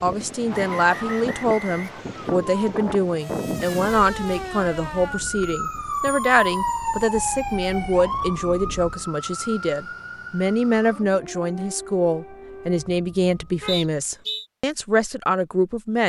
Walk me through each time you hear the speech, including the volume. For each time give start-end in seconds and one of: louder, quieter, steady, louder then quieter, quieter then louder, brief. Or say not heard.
0.0-16.0 steady.